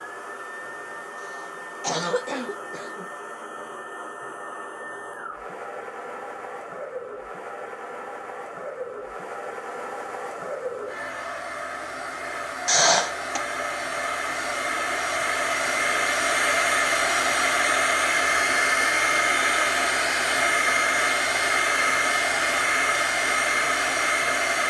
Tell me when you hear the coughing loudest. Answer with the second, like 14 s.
13 s.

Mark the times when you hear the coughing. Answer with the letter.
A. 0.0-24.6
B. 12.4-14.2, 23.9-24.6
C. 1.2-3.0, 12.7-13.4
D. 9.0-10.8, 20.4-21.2
C.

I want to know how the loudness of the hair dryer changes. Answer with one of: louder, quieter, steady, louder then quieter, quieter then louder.
louder.